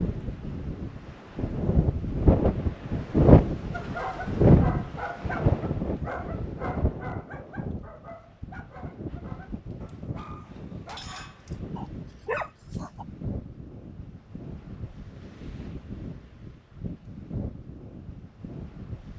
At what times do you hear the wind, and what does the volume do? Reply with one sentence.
You can hear the wind from 0.0 to 19.1 s, getting quieter.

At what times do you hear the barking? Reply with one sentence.
You can hear the barking from 3.7 to 13.1 s.